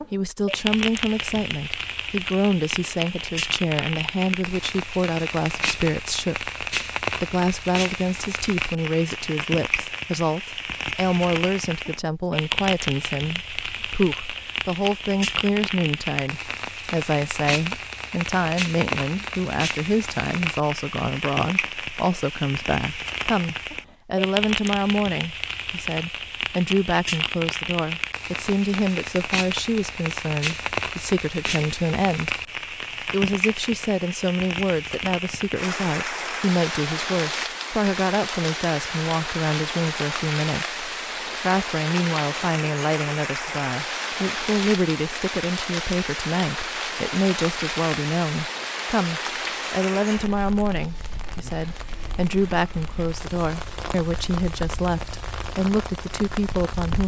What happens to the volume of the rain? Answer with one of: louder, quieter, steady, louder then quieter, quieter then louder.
steady.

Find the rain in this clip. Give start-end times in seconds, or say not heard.
0.0-57.0.